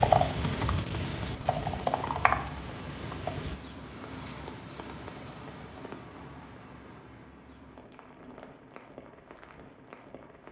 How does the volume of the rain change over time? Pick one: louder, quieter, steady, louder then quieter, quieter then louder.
quieter.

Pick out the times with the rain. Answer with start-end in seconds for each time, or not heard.
0.2-10.4.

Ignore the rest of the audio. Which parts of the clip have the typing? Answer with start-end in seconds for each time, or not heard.
0.0-3.5.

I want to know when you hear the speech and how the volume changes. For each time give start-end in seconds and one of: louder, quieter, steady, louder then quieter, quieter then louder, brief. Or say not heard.
not heard.